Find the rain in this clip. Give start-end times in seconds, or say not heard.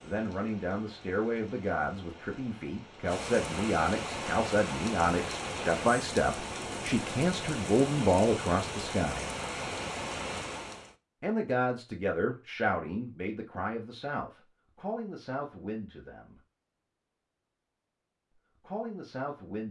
0.0-10.9.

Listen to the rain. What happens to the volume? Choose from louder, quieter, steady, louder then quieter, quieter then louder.
louder.